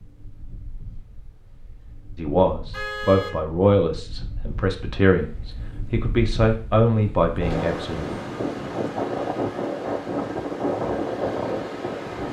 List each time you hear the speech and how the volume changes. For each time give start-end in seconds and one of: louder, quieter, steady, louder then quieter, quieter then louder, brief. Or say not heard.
2.1-8.1 steady.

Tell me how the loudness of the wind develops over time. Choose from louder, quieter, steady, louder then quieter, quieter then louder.
louder.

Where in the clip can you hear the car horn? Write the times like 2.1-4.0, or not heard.
2.7-3.4.